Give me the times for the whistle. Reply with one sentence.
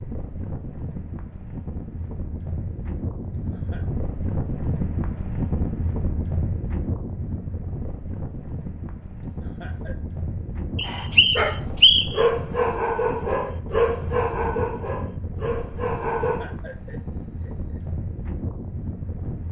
The whistle can be heard from 10.8 to 12.2 s.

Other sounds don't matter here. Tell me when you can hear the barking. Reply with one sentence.
You can hear the barking from 10.8 to 16.6 s.